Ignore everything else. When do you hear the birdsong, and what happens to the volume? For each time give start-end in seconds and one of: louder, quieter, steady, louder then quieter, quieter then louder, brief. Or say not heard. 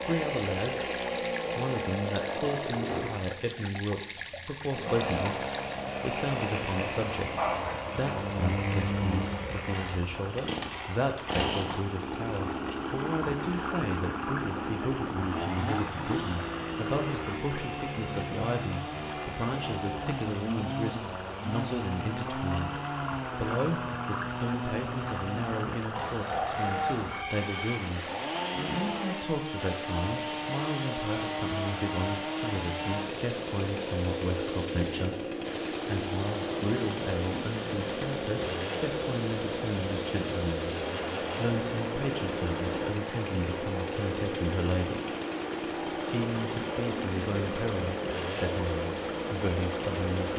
not heard.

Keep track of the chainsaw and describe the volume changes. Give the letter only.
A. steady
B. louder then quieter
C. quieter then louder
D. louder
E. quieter
A.